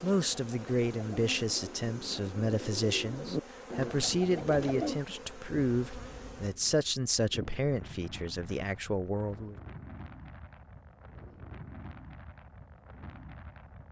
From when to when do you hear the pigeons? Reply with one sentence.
The pigeons can be heard from 0.0 to 5.0 s.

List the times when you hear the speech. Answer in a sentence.
The speech can be heard from 0.0 to 9.6 s.